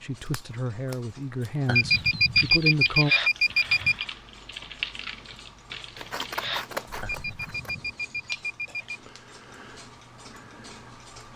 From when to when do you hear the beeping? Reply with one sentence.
You can hear the beeping from 1.6 to 4.0 s and from 7.0 to 9.0 s.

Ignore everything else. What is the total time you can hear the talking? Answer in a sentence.
You can hear the talking for 3 seconds altogether.